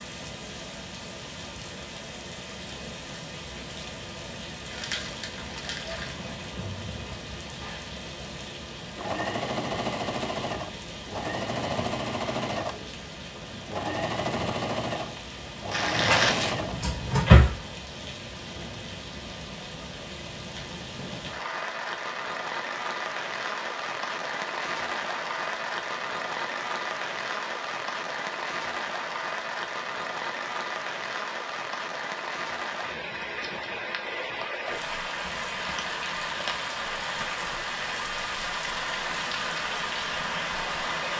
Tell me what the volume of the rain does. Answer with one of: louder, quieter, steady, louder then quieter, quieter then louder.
louder.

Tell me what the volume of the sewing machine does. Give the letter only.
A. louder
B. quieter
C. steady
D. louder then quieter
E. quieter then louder
C.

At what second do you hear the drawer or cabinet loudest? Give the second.
17 s.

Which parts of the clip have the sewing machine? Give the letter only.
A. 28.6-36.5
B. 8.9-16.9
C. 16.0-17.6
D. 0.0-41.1
B.